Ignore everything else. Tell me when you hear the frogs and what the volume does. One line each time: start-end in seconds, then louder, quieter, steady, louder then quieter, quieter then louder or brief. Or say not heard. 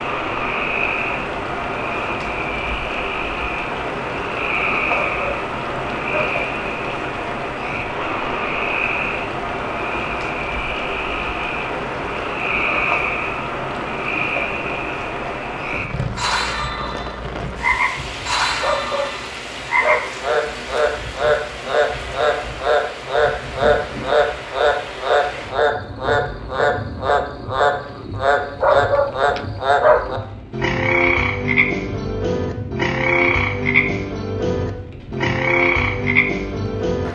0.0-37.0 louder.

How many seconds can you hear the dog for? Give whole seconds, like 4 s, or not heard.
5 s.